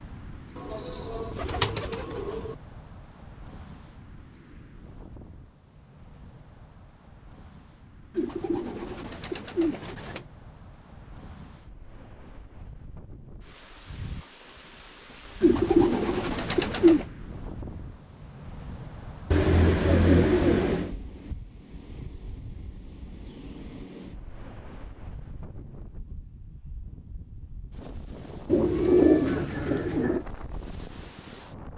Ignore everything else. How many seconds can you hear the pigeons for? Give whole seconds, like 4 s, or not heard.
9 s.